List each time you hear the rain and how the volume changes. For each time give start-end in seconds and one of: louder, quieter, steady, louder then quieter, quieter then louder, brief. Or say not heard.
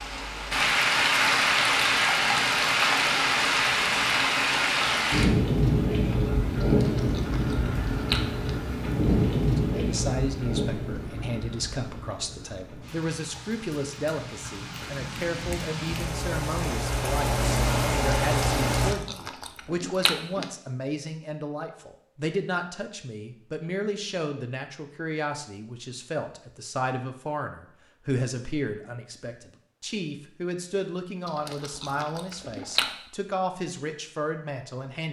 0.0-18.9 quieter then louder.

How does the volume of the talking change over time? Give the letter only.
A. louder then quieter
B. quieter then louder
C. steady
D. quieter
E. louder
C.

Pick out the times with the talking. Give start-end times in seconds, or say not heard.
9.6-35.0.